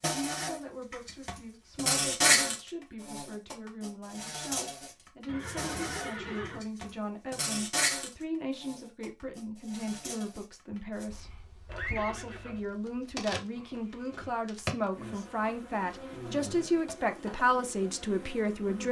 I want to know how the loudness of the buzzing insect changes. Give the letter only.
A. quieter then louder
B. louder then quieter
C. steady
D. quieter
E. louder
D.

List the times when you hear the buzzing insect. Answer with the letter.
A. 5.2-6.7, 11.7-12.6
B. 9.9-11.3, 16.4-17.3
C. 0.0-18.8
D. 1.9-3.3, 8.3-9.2
C.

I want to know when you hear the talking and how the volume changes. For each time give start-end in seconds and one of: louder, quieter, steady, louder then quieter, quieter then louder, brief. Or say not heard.
0.0-18.8 louder.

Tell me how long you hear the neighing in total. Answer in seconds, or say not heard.
2 s.